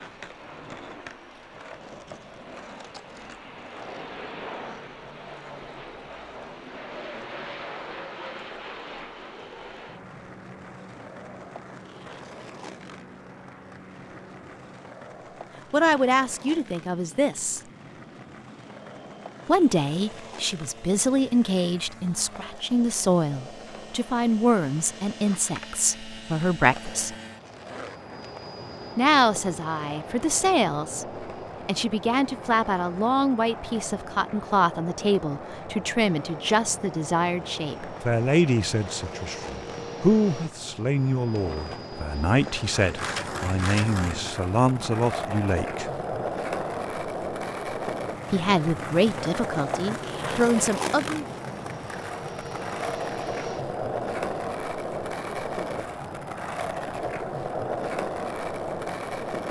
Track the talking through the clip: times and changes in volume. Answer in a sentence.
The talking can be heard briefly from 15.7 to 17.6 s; from 19.4 to 27.1 s, at a steady volume; from 28.9 to 45.9 s, at a steady volume; and briefly from 48.3 to 51.2 s.